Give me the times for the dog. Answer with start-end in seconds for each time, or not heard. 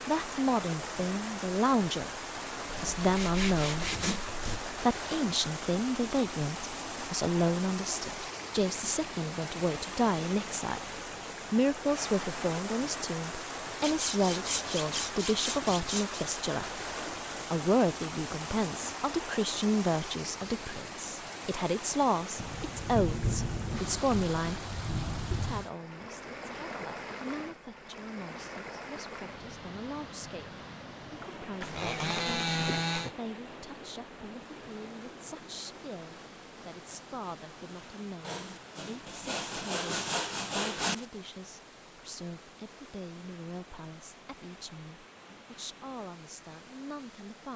not heard.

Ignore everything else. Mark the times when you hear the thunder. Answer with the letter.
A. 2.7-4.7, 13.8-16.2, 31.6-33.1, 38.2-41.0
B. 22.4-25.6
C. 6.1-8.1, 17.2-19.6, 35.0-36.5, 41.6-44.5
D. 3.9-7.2
B.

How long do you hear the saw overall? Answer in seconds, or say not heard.
9 s.